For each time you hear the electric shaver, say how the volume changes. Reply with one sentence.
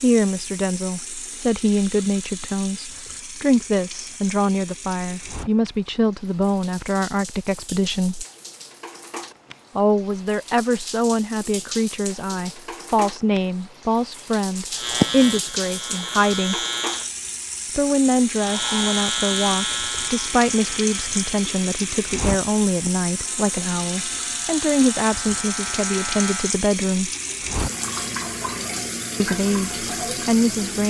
You can hear the electric shaver briefly from 14.7 to 17.1 s; and from 18.4 to 26.6 s, getting quieter then louder.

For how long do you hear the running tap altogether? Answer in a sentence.
The running tap can be heard for 31 seconds in total.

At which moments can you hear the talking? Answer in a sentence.
The talking can be heard from 0.0 to 8.2 s, from 9.8 to 16.6 s, from 17.8 to 27.1 s and from 29.2 to 30.8 s.